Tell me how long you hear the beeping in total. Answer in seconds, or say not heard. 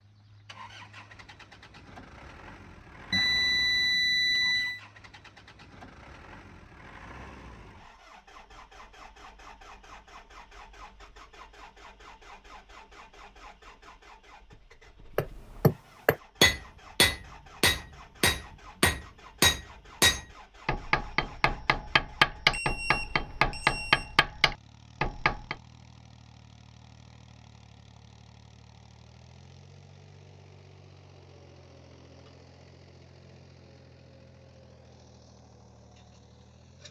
3 s.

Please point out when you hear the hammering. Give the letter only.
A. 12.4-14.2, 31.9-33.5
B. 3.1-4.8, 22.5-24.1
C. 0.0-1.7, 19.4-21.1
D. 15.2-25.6
D.